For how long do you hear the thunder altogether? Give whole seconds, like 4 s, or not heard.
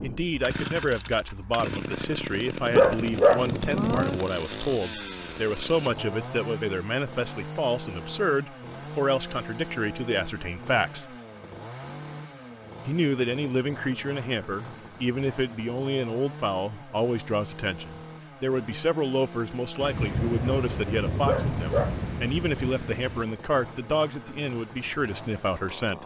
5 s.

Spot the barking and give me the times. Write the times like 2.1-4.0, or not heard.
2.8-3.5, 21.2-22.0.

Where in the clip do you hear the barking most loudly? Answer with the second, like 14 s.
3 s.